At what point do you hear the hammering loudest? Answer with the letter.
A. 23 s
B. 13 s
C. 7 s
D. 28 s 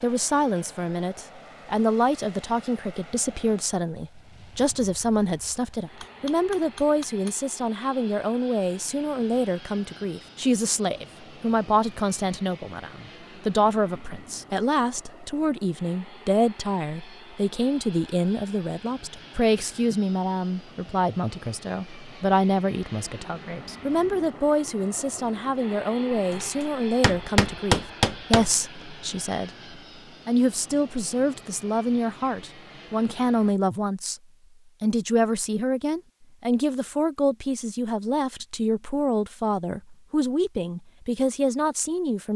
D.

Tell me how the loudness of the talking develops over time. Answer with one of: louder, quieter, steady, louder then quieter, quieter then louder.
steady.